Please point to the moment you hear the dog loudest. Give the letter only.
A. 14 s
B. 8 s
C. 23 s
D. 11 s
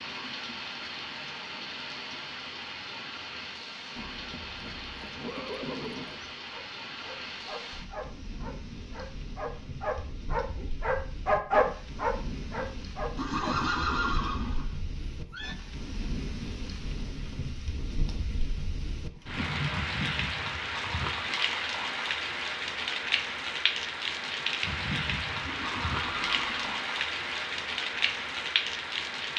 D.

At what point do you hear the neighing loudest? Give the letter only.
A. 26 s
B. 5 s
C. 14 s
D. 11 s
C.